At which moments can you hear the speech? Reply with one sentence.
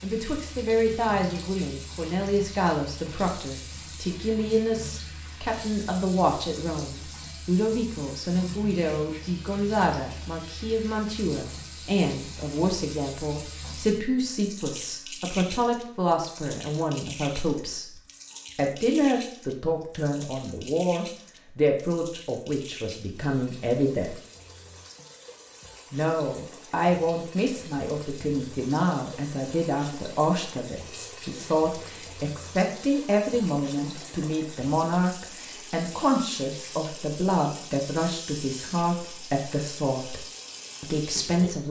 The speech can be heard from 0.0 to 17.9 s, from 18.6 to 24.2 s, from 25.9 to 40.2 s and from 40.8 to 41.6 s.